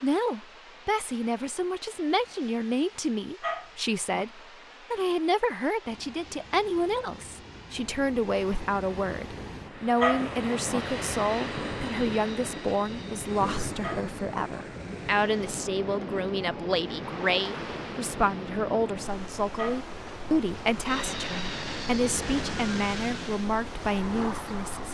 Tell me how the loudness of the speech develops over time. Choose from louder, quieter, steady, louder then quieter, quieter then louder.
steady.